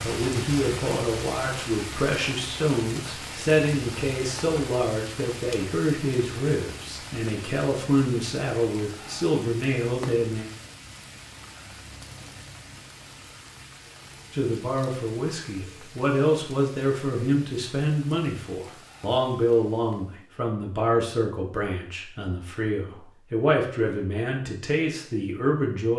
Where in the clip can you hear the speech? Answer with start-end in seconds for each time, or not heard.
0.0-10.5, 14.3-25.9.